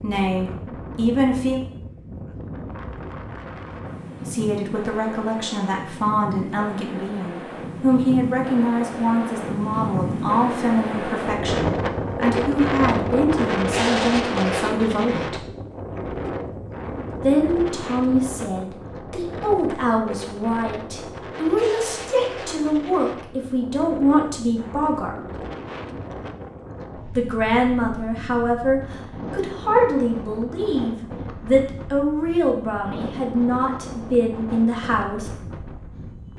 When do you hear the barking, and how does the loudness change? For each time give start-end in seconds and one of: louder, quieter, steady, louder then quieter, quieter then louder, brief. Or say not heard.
not heard.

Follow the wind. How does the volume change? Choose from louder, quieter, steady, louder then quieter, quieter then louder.
louder then quieter.